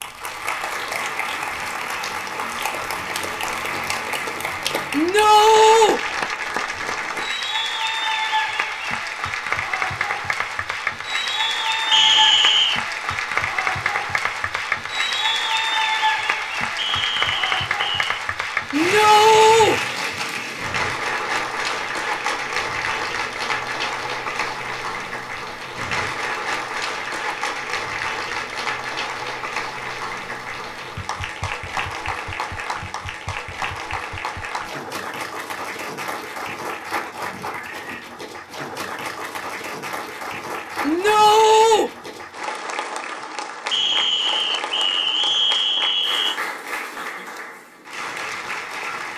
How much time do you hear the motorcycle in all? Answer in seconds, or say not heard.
not heard.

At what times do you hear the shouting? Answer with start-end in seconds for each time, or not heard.
4.9-6.0, 18.7-19.8, 40.8-41.9.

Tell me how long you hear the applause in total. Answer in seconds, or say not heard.
49 s.